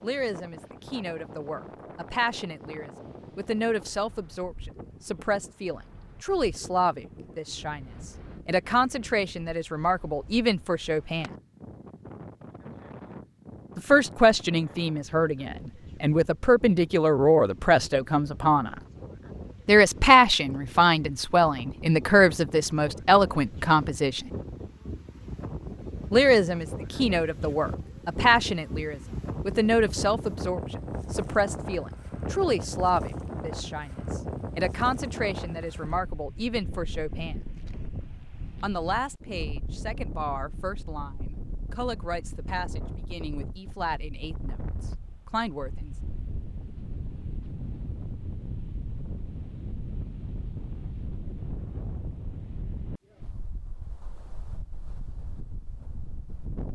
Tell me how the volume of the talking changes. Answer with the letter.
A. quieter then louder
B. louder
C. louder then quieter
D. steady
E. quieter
C.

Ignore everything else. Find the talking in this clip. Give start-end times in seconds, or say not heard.
0.0-11.3, 13.8-18.8, 19.6-24.3, 26.1-37.4, 38.6-45.9.